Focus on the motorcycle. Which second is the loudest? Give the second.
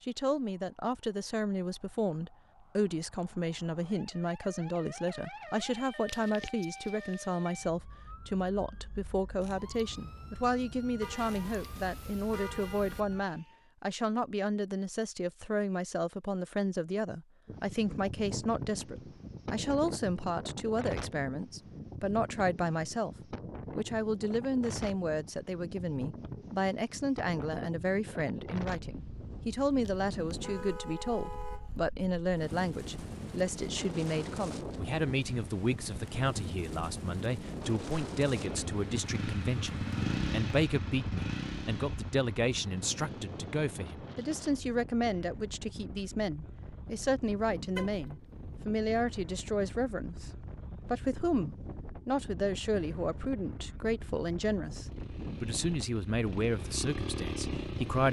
40 s.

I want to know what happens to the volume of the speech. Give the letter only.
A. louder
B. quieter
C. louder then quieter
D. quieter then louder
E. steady
E.